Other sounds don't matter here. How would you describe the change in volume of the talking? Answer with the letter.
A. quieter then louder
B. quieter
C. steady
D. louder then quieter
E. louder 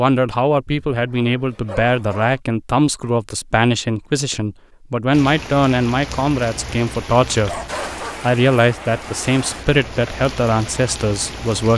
C.